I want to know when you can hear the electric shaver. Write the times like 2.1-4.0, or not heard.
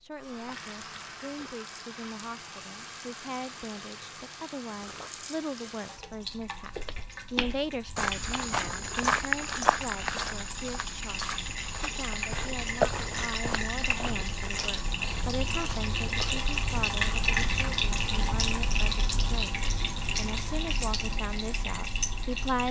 not heard.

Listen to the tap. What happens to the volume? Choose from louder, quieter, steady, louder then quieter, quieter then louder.
louder.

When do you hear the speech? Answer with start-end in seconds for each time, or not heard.
0.0-22.6.